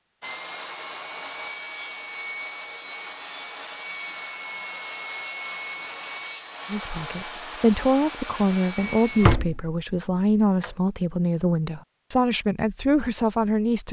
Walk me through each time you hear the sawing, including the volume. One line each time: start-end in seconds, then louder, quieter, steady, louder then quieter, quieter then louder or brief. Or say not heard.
0.2-9.3 steady.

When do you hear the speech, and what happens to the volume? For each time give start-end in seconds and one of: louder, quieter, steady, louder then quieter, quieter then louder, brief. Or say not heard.
6.7-13.8 steady.